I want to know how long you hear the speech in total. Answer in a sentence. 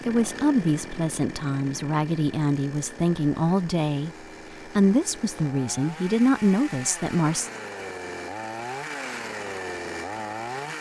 You can hear the speech for 7 seconds altogether.